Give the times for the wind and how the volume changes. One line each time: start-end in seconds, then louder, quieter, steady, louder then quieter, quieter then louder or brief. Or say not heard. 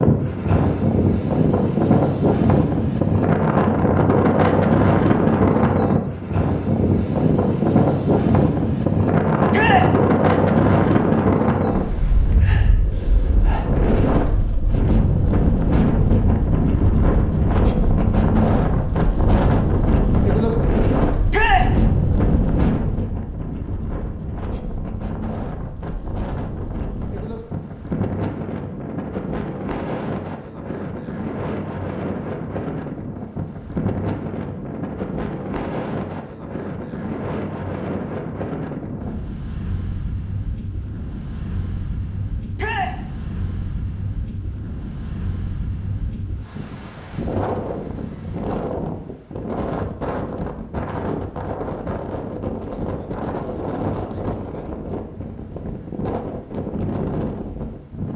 0.0-58.1 quieter.